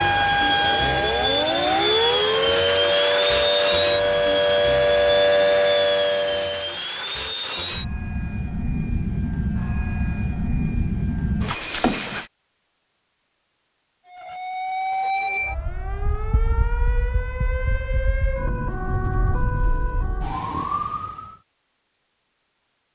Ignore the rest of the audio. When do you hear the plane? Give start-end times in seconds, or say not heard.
0.0-12.3.